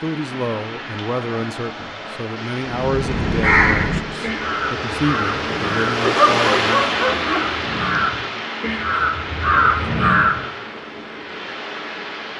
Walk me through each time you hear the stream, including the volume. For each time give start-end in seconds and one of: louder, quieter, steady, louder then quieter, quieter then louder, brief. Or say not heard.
0.0-12.3 louder then quieter.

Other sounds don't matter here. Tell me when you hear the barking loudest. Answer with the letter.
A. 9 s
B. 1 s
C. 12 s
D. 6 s
D.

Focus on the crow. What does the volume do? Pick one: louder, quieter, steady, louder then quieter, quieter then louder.
quieter then louder.